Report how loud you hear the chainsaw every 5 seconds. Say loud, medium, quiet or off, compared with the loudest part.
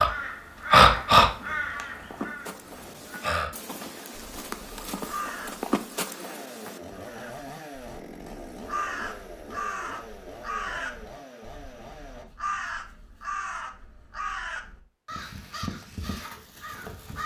off, loud, loud, off.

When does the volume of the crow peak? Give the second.
1 s.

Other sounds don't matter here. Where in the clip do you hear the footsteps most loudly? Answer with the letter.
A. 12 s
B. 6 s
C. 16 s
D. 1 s
B.